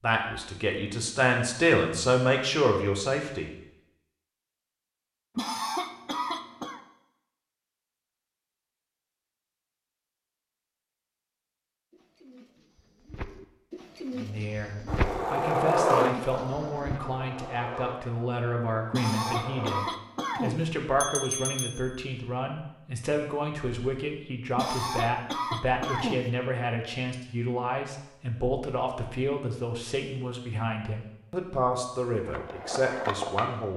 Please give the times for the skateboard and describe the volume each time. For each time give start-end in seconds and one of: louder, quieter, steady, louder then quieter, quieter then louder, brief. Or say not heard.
14.8-20.0 quieter
32.2-33.7 brief.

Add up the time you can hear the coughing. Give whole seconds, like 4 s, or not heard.
5 s.